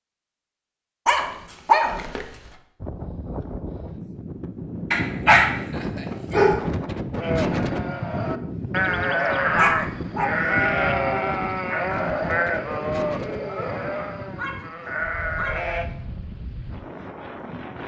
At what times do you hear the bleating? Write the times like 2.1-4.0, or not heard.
7.2-15.9.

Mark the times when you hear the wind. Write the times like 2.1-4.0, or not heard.
2.8-17.8.